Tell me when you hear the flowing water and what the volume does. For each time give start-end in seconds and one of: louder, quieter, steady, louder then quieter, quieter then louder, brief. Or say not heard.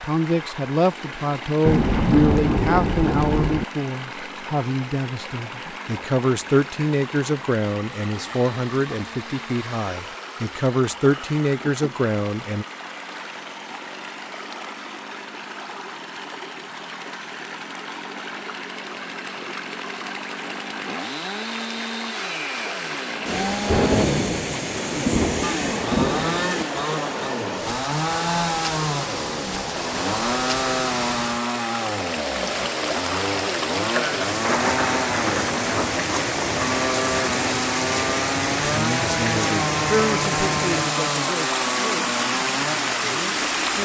0.0-43.8 louder.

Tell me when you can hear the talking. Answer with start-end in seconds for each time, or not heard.
0.0-12.7, 38.6-43.8.